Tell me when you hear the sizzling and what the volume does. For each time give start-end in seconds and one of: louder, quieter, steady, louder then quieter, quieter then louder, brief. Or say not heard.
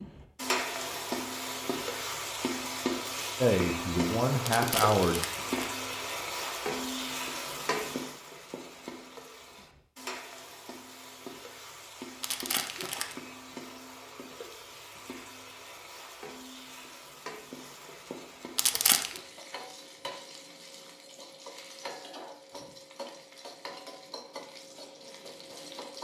0.0-26.0 quieter.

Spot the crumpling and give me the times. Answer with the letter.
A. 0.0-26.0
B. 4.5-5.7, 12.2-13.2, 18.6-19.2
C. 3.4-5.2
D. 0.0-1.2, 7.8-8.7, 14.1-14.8
B.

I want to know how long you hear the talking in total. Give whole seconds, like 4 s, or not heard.
2 s.